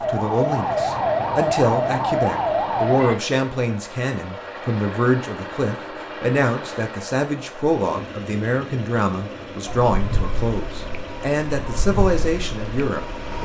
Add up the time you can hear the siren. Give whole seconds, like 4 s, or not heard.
7 s.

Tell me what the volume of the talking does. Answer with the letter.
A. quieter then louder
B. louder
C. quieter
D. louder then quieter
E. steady
E.